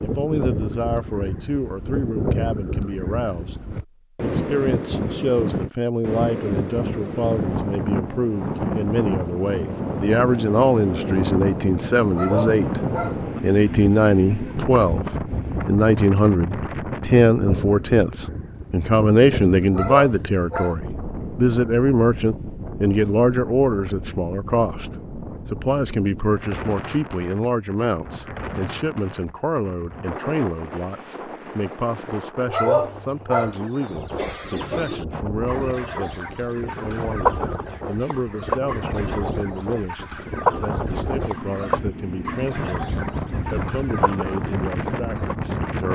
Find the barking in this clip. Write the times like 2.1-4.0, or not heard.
12.1-13.2, 19.7-20.8, 32.5-33.5.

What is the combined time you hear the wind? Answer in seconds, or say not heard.
46 s.